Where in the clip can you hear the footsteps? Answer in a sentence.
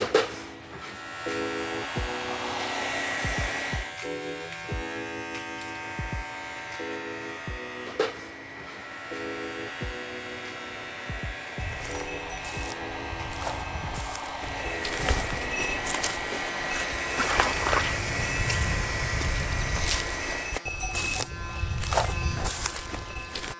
You can hear the footsteps from 11.6 to 23.5 s.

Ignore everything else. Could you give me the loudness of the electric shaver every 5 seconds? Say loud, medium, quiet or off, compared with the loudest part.
loud, loud, medium, medium, medium.